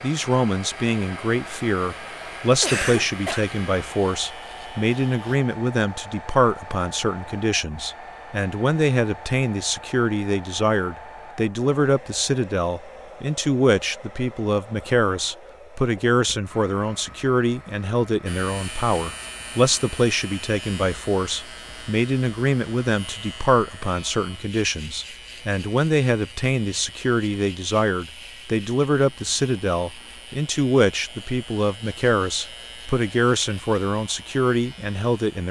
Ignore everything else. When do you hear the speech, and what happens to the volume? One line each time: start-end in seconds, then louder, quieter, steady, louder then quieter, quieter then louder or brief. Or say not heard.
0.0-35.4 steady.